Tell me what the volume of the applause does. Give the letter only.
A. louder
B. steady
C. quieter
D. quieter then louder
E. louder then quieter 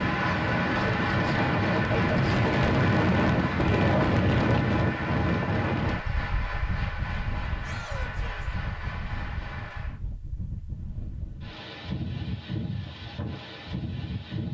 C.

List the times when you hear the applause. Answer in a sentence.
You can hear the applause from 0.0 to 10.0 s.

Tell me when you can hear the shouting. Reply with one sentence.
The shouting can be heard from 7.6 to 8.6 s.